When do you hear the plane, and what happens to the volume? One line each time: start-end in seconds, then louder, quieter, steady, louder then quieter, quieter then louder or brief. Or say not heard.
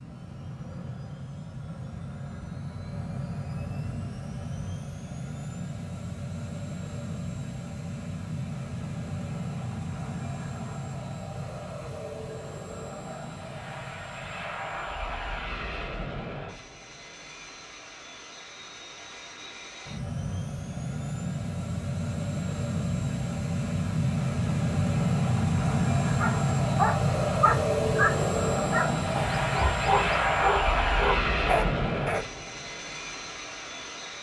0.0-34.1 louder.